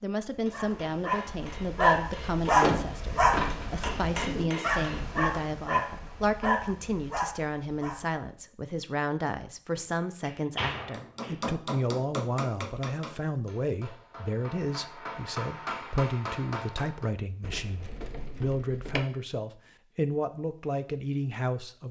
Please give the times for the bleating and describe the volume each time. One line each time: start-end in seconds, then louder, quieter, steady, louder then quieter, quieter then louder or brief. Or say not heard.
not heard.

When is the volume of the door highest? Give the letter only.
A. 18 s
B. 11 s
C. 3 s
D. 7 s
C.